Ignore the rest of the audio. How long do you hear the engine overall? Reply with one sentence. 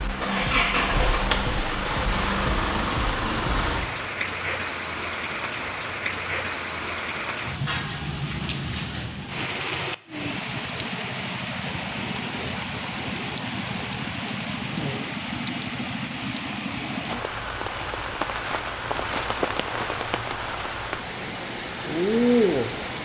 You can hear the engine for 4 seconds altogether.